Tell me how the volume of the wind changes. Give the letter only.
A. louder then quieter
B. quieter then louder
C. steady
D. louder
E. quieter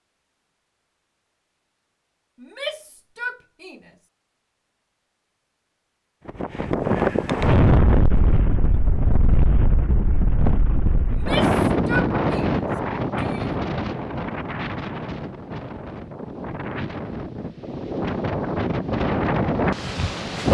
B.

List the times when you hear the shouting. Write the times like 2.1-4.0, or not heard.
2.4-3.9, 11.1-13.6.